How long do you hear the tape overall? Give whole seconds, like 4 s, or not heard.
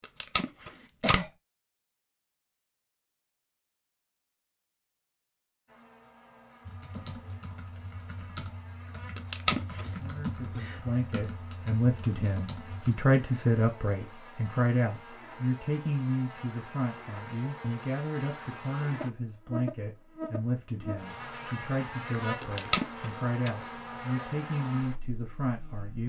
3 s.